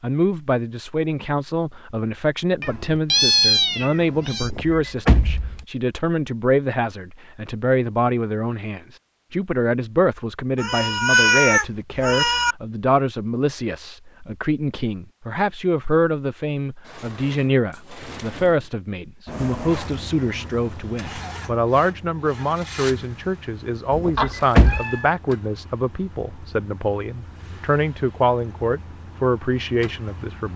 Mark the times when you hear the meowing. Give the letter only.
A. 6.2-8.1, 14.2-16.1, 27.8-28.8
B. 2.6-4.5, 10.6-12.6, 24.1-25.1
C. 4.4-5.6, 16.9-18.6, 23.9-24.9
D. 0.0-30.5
B.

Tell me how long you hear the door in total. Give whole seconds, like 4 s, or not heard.
4 s.